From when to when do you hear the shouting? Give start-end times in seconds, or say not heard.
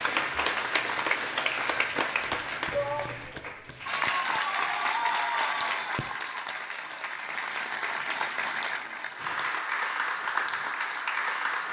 2.7-3.4.